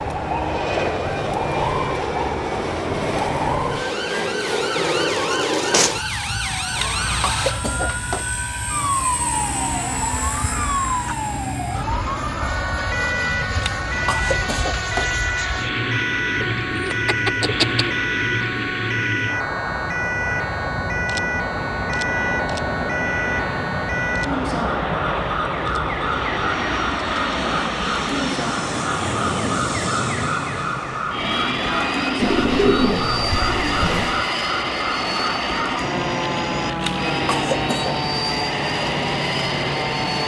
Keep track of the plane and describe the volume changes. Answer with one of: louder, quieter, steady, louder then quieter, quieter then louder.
steady.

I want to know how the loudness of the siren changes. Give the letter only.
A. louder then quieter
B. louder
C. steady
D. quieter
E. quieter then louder
C.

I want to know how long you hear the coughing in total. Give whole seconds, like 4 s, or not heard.
4 s.